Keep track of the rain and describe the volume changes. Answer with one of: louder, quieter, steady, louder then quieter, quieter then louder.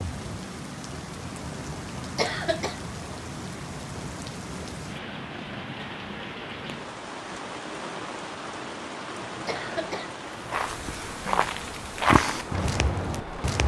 steady.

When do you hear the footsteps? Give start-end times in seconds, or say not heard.
10.5-13.6.